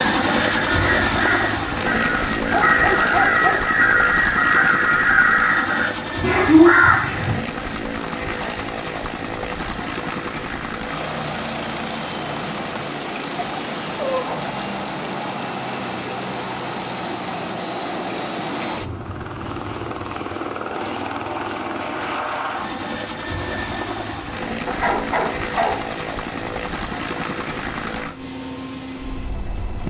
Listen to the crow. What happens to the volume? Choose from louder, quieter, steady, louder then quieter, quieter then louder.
louder.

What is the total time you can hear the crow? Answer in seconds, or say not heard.
7 s.